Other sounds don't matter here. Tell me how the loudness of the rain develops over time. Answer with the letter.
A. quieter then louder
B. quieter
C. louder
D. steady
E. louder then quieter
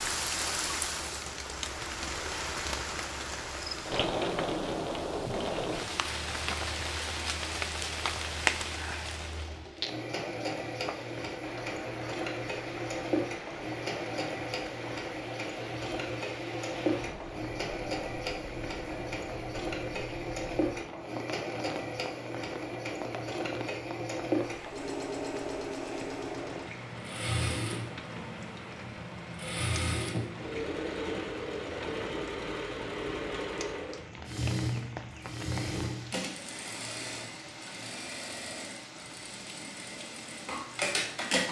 B.